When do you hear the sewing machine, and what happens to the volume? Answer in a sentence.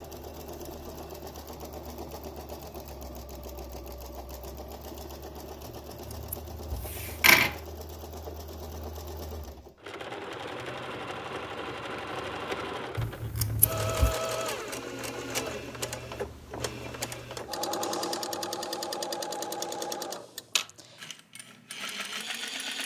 You can hear the sewing machine from 0.0 to 22.8 s, getting louder.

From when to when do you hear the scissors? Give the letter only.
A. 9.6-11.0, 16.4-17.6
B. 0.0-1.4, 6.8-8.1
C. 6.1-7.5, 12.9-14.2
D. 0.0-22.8
C.